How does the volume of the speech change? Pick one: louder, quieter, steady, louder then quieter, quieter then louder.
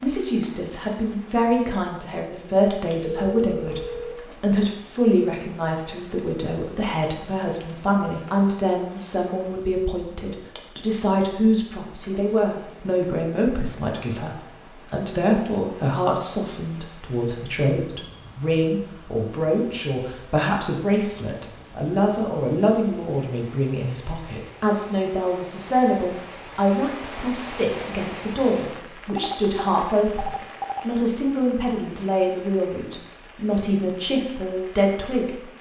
steady.